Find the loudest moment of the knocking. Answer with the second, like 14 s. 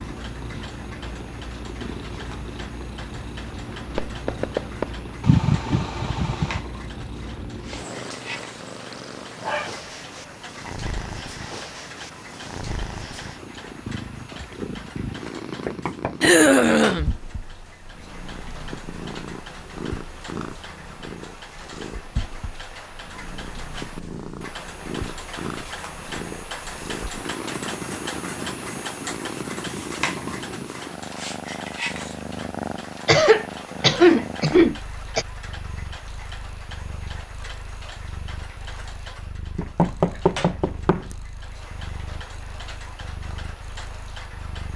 40 s.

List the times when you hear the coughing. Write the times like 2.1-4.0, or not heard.
5.2-6.6, 16.2-17.1, 33.0-35.2.